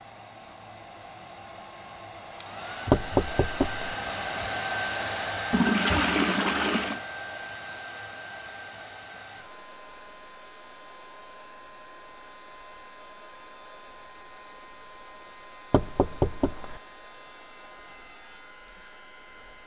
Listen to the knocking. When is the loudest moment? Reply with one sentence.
The volume of the knocking peaks at 3 seconds.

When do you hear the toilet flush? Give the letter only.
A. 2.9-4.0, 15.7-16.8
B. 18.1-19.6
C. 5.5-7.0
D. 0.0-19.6
C.